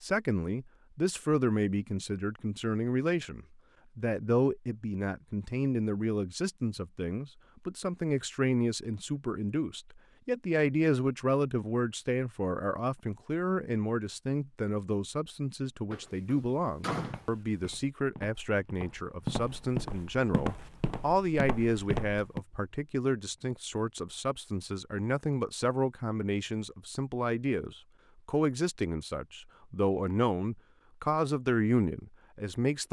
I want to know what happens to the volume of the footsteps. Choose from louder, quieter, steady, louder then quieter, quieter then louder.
louder.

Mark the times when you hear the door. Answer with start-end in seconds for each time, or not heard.
15.9-17.7.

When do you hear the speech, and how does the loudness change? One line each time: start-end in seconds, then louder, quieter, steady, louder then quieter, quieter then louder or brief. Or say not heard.
0.0-32.8 steady.